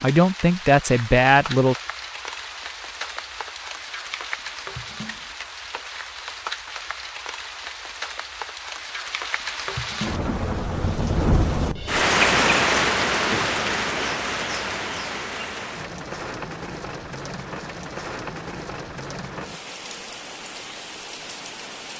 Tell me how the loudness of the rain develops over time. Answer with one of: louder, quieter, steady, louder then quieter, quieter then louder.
louder then quieter.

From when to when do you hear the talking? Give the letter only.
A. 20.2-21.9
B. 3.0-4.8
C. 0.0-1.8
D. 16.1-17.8
C.